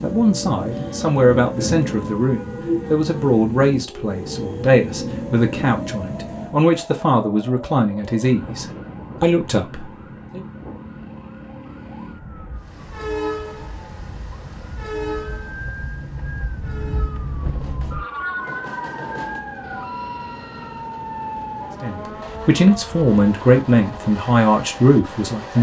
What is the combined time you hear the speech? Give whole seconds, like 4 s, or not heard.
14 s.